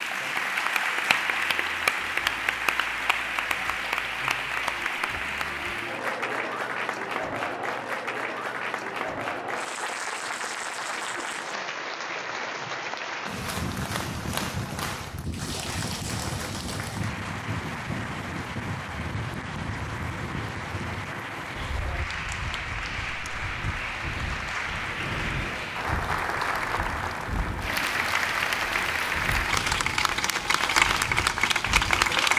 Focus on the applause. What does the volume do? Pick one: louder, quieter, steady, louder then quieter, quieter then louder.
quieter then louder.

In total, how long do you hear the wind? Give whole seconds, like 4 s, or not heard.
19 s.